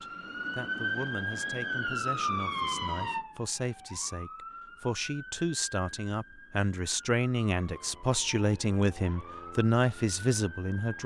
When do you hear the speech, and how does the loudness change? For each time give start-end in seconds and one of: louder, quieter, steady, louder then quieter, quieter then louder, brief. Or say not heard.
0.0-11.0 louder.